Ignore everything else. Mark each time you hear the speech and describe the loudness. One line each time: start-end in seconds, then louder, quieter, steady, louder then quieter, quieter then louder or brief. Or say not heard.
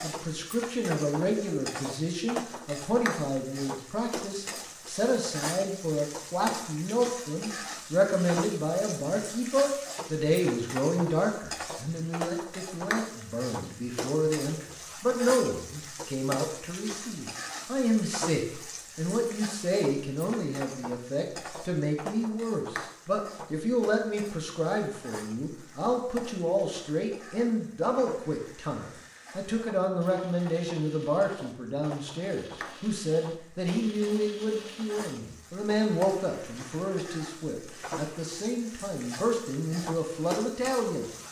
0.0-41.0 steady.